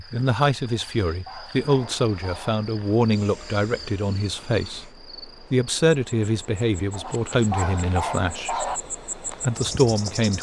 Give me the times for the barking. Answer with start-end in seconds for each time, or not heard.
0.7-2.5, 6.9-8.8.